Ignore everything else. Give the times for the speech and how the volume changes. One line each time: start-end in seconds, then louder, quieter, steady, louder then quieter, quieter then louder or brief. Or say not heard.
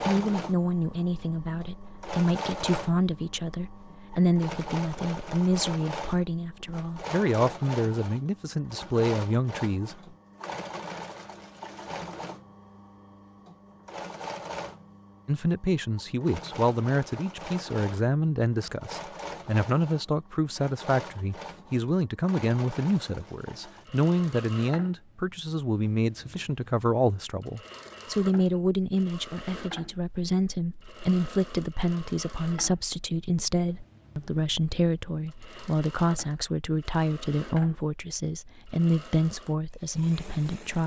0.0-9.9 steady
15.2-40.8 steady.